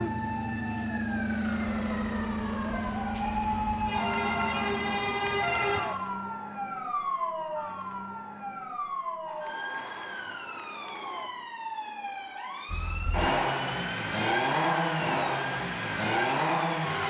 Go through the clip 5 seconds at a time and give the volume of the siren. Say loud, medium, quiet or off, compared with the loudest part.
loud, loud, medium, medium.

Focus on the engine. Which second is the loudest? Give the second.
15 s.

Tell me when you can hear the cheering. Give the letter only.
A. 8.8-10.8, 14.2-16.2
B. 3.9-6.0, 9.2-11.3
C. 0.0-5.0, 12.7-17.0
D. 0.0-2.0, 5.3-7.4
B.